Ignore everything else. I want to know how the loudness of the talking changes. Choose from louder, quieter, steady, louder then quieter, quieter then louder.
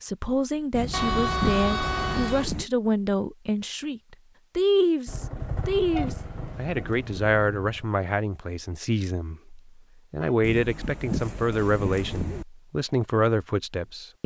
steady.